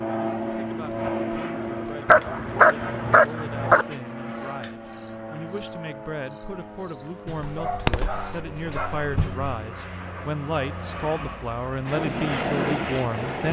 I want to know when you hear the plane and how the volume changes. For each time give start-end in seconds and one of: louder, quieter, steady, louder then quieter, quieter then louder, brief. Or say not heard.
0.0-13.4 quieter then louder.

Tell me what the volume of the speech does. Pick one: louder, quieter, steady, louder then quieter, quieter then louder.
louder.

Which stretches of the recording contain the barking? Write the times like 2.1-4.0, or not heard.
2.0-3.9, 7.2-9.6.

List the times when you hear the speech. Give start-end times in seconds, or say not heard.
0.1-13.4.